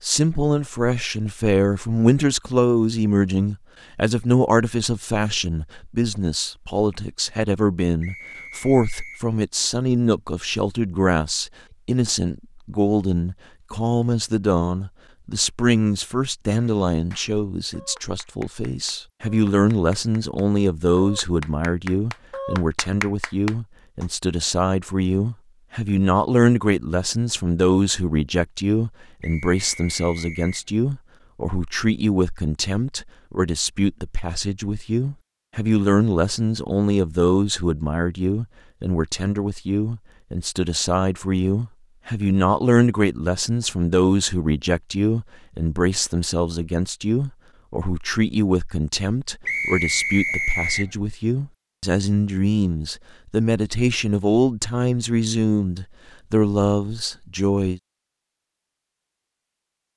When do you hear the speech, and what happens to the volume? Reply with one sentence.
You can hear the speech from 0.0 to 57.8 s, at a steady volume.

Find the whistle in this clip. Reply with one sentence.
You can hear the whistle from 8.0 to 9.2 s, from 29.2 to 30.6 s and from 49.5 to 50.9 s.